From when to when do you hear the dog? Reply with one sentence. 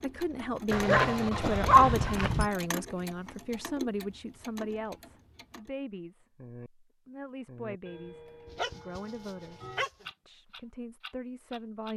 The dog can be heard from 0.7 to 2.5 s and from 8.4 to 10.1 s.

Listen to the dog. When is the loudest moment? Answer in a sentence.
The volume of the dog peaks at 2 seconds.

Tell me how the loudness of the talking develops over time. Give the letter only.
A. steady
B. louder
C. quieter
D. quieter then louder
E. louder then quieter
C.